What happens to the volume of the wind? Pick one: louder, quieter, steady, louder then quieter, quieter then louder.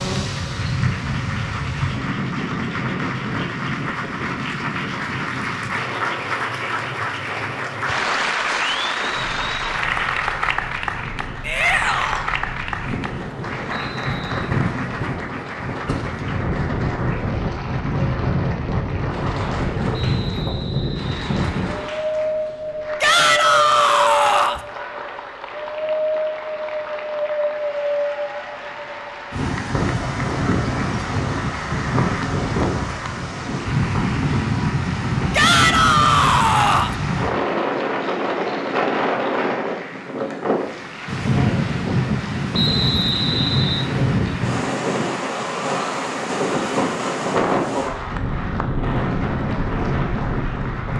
louder.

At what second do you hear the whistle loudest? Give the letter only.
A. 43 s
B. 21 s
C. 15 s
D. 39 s
A.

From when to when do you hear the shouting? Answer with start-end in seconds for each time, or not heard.
11.4-12.3, 23.0-24.6, 35.3-37.0.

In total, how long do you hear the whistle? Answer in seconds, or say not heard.
4 s.